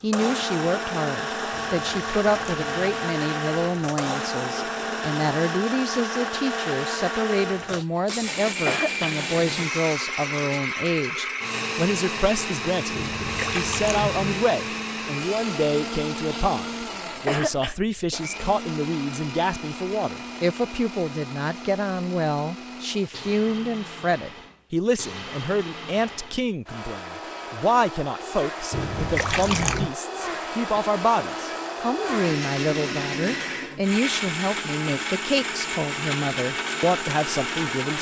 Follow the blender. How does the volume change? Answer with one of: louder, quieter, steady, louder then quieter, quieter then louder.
quieter then louder.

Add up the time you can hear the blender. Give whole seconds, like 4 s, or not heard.
38 s.